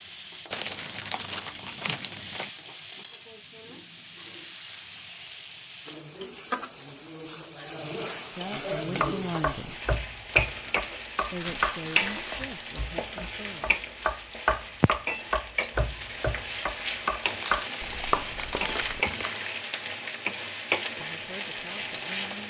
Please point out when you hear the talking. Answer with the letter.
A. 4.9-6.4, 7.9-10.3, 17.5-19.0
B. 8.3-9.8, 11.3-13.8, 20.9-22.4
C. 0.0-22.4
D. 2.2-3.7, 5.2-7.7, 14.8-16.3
B.